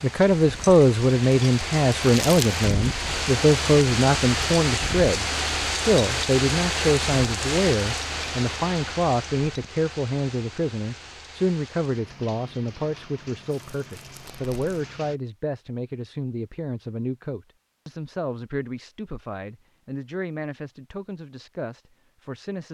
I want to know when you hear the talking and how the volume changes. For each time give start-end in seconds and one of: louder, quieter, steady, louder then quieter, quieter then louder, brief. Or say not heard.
0.0-22.6 quieter.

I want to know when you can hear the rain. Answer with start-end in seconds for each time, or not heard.
0.0-15.2.